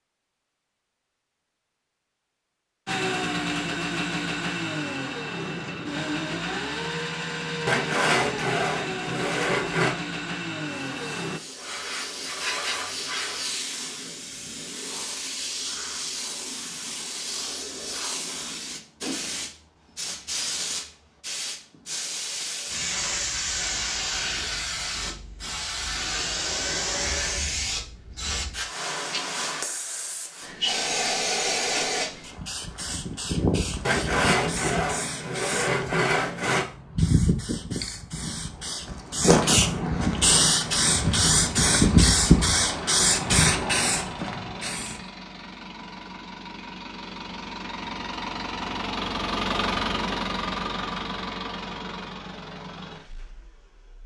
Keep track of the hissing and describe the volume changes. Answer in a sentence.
The volume of the hissing goes up.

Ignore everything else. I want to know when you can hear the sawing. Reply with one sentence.
The sawing can be heard from 7.7 to 9.9 s and from 33.9 to 36.6 s.